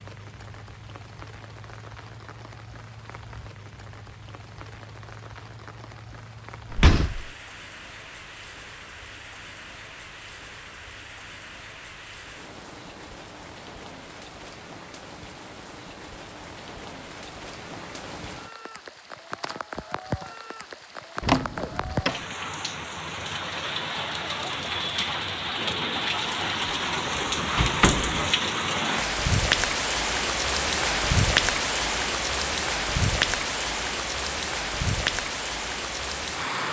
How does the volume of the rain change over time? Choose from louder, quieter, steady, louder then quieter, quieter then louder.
louder.